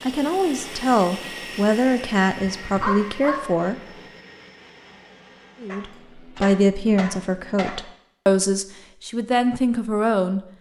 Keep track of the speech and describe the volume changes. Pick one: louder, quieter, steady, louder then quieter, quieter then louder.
steady.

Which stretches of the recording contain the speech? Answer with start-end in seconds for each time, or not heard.
0.0-3.8, 5.6-10.4.